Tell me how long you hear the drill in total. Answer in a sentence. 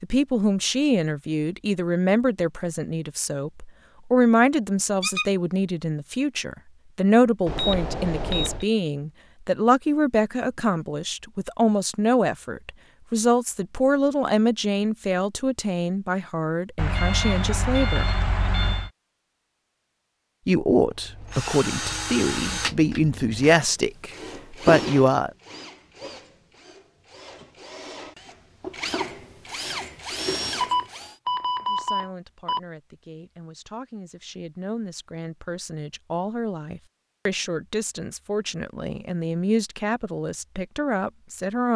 You can hear the drill for 10 seconds altogether.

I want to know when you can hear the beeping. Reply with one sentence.
The beeping can be heard from 7.5 to 8.7 s, from 16.8 to 18.9 s and from 30.6 to 32.6 s.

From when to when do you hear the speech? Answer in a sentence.
You can hear the speech from 0.0 to 18.1 s, from 20.4 to 25.3 s and from 31.6 to 41.7 s.